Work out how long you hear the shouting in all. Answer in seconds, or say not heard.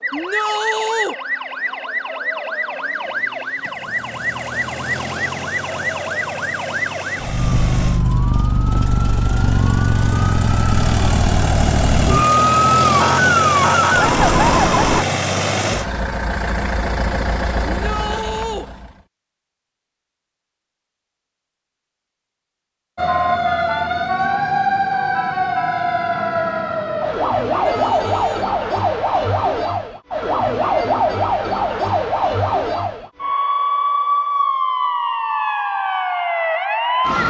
3 s.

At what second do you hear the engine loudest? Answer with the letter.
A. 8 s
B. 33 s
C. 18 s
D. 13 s
D.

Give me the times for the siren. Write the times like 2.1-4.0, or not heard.
0.0-15.1, 22.9-37.2.